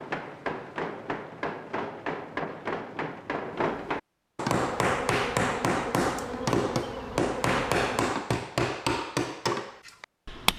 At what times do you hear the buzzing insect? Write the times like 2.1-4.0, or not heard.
4.5-8.1.